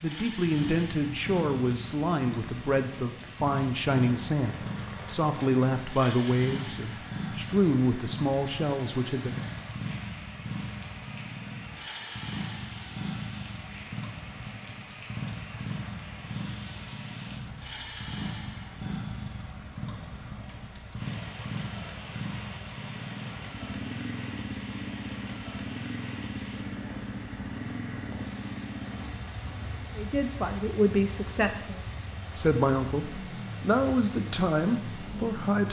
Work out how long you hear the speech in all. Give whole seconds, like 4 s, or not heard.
15 s.